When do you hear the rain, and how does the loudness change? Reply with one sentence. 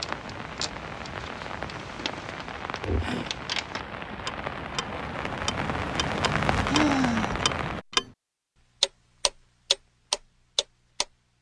You can hear the rain from 0.0 to 7.8 s, getting louder.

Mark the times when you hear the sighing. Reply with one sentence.
The sighing can be heard from 3.0 to 3.5 s and from 6.7 to 7.5 s.